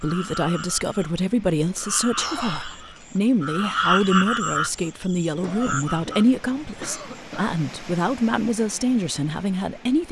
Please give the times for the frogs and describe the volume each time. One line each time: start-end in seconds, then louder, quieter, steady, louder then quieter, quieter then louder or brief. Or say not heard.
0.0-7.0 louder then quieter.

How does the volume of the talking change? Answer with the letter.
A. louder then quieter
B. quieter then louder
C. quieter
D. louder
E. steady
E.